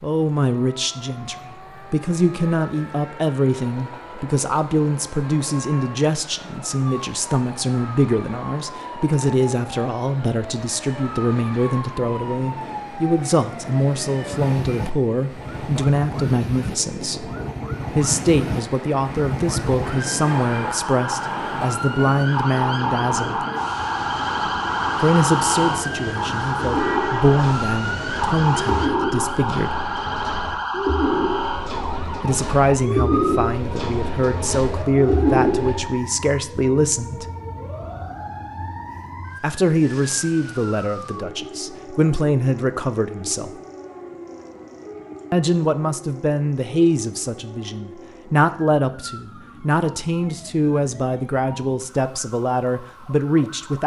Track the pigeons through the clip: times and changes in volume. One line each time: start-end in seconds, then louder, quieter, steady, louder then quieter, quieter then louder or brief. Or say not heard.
26.6-35.9 louder.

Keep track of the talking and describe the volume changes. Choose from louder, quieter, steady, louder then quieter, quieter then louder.
steady.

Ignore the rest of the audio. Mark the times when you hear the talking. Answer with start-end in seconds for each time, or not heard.
0.0-17.3, 17.9-23.4, 25.0-29.8, 32.2-37.2, 39.4-43.5, 45.3-53.8.